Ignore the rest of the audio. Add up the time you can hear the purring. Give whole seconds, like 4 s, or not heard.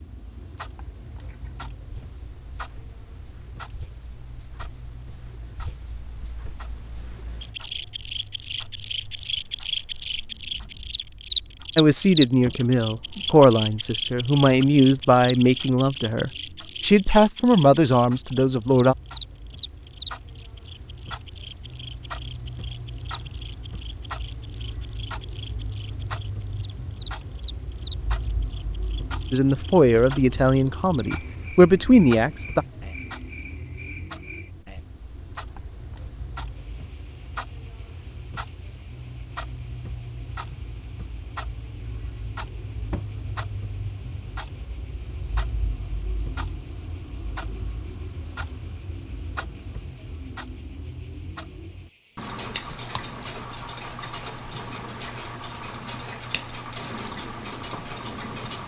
not heard.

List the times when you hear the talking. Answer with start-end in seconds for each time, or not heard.
11.8-18.9, 29.3-32.6.